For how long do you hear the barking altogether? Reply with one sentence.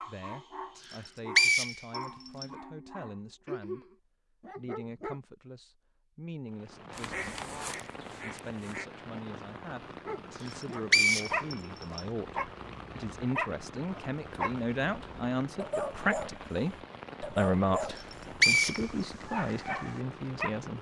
The barking can be heard for 16 seconds in total.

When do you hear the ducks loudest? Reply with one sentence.
The volume of the ducks peaks at 7 seconds.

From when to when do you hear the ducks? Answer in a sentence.
The ducks can be heard from 6.9 to 8.9 s.